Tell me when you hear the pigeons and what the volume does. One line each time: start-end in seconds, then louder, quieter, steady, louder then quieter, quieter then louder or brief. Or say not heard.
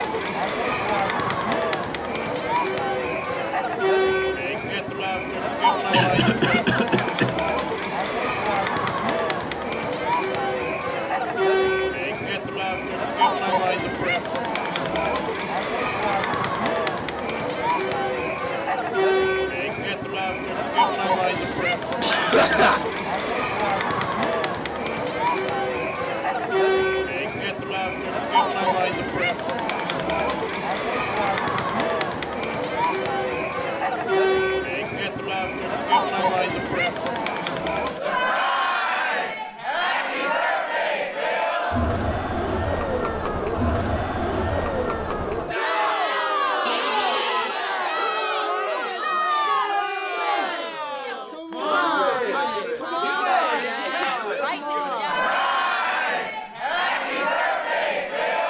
not heard.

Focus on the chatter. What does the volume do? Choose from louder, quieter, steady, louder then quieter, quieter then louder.
steady.